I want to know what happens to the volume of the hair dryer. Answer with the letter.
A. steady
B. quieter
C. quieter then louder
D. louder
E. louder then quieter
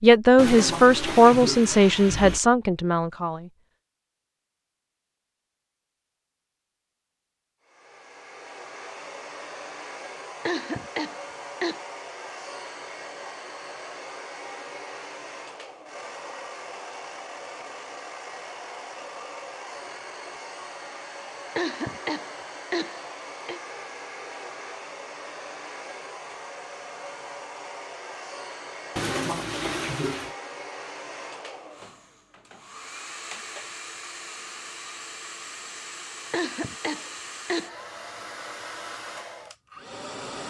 A.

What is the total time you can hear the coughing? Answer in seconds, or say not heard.
5 s.